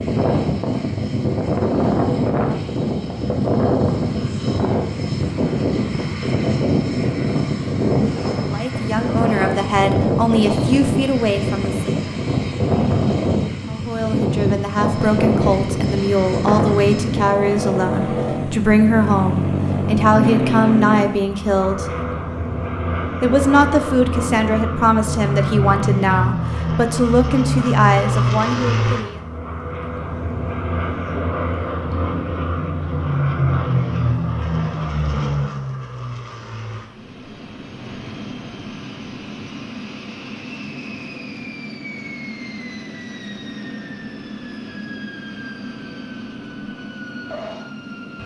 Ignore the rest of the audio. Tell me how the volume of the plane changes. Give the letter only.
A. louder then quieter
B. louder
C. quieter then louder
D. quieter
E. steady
D.